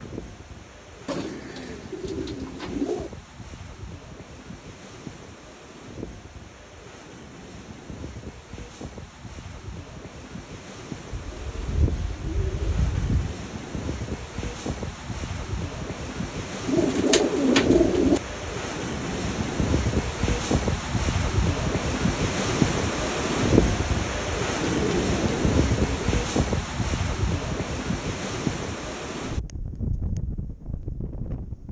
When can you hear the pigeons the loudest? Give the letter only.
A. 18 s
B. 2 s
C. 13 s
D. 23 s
A.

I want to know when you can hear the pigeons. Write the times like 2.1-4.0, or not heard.
1.1-3.1, 11.1-13.3, 16.6-18.2, 24.6-26.1.